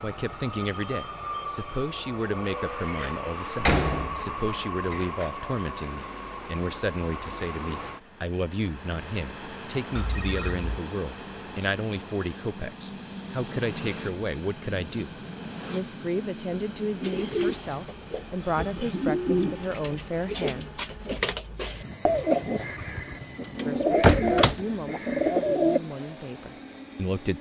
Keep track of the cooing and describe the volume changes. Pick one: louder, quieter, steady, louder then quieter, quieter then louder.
louder.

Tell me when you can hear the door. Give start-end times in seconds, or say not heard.
2.9-5.3, 24.0-24.6.